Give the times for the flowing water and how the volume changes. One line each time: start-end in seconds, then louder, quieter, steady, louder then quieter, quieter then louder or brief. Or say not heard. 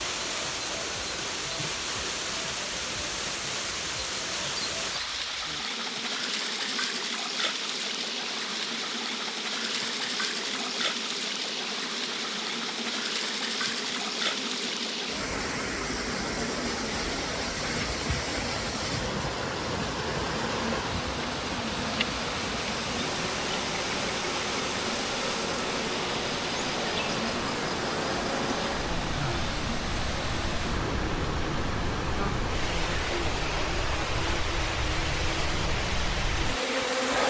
0.0-37.2 steady.